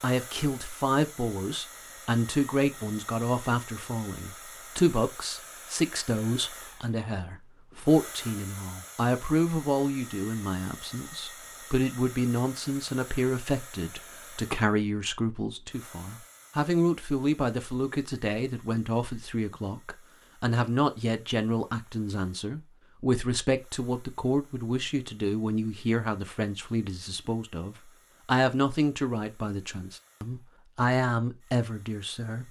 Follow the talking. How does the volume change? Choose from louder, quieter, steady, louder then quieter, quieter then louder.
steady.